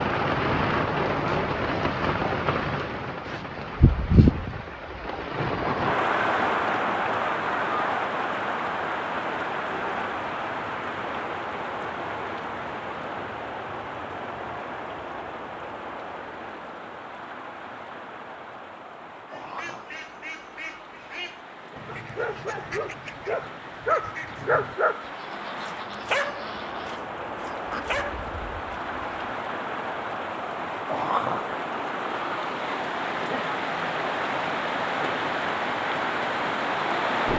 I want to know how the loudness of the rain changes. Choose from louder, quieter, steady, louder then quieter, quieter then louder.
quieter then louder.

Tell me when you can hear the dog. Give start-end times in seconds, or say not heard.
21.9-28.1.